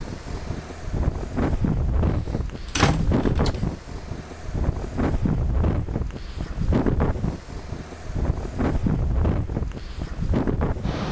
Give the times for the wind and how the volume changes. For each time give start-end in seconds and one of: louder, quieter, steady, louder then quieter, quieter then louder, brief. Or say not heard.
0.0-11.0 steady.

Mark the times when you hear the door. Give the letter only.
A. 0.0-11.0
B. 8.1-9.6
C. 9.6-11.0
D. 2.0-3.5
D.